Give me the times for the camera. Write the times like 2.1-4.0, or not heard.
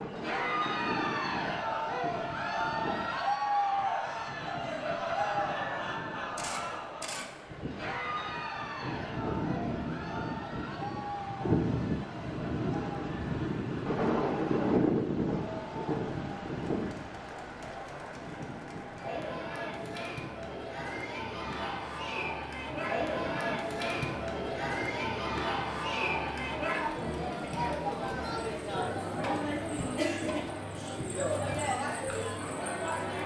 6.3-7.2.